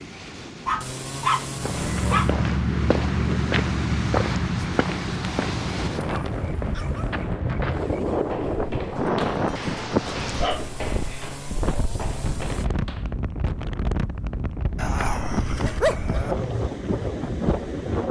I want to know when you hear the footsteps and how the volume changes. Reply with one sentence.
The footsteps can be heard from 1.6 to 13.1 s, getting quieter.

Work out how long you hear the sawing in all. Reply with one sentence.
The sawing can be heard for 4 seconds in total.